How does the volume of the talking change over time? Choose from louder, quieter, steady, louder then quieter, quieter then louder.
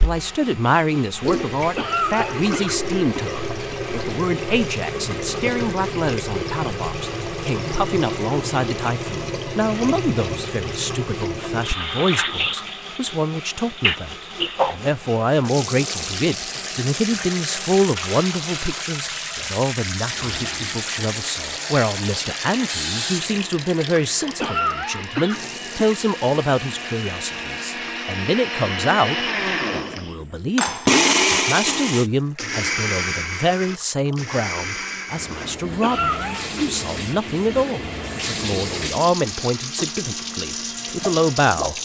steady.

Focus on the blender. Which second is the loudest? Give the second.
31 s.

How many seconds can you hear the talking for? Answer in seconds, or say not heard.
42 s.